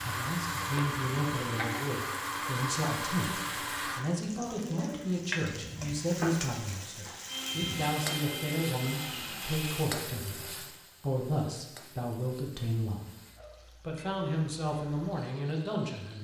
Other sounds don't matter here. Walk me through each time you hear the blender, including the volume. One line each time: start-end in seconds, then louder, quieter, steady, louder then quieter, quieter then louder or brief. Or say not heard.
0.0-4.0 steady
7.2-9.9 brief.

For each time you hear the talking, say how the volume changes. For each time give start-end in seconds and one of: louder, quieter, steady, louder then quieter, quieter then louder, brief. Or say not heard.
0.0-13.1 steady
13.8-16.1 brief.